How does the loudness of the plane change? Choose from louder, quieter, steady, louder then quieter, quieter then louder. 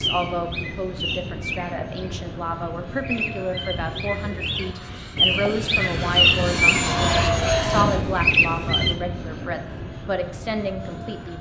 louder then quieter.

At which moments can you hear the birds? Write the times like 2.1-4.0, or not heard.
0.0-8.9.